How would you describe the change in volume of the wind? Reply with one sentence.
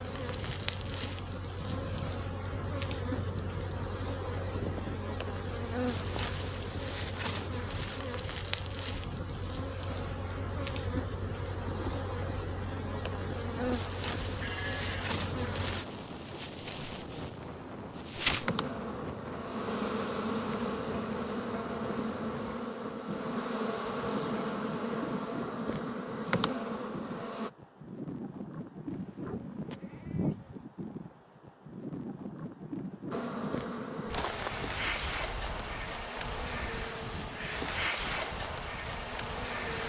The volume of the wind stays about the same.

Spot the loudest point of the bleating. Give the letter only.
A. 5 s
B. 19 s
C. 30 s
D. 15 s
C.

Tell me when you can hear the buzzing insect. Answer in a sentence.
The buzzing insect can be heard from 0.0 to 27.5 s and from 33.1 to 39.8 s.